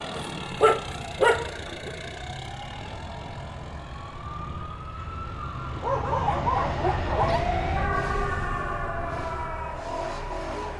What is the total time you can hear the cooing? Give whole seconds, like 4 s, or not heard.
not heard.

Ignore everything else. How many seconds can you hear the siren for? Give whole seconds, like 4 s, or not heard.
11 s.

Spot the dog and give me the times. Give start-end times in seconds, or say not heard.
0.1-1.9, 5.8-7.5.